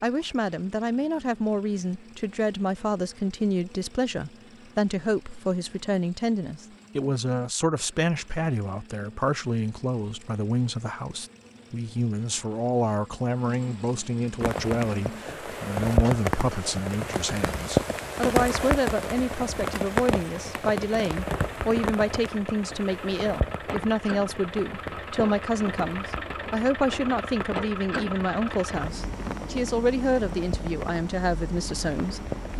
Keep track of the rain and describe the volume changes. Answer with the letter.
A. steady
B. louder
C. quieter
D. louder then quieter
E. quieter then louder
C.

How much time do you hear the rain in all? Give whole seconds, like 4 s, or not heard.
18 s.